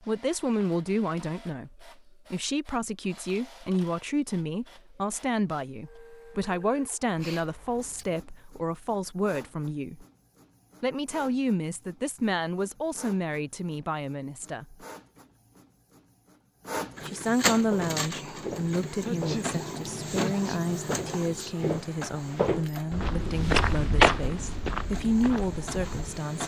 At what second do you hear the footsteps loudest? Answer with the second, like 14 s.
24 s.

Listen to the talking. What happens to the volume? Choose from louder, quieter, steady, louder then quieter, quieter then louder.
steady.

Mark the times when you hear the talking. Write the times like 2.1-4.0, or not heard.
0.0-10.1, 10.8-14.8, 17.1-26.4.